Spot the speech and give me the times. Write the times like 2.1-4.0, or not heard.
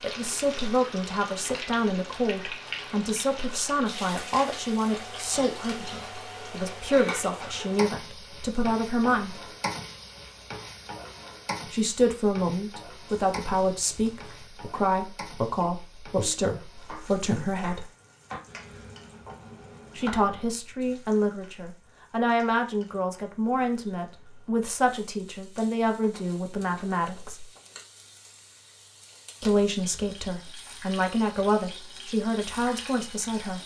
0.0-9.5, 11.7-17.9, 19.9-27.4, 29.4-33.6.